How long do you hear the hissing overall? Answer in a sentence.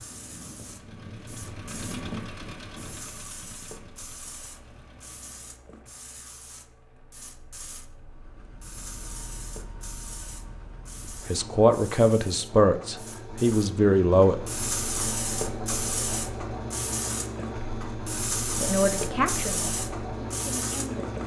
You can hear the hissing for 21 seconds altogether.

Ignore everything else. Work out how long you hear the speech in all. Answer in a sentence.
You can hear the speech for 6 seconds altogether.